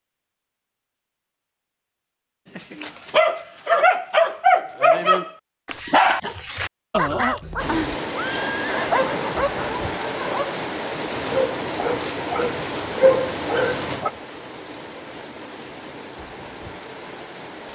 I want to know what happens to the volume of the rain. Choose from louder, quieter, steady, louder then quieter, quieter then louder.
quieter.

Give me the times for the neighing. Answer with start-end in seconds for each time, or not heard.
8.2-9.5.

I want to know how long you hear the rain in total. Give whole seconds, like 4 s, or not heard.
10 s.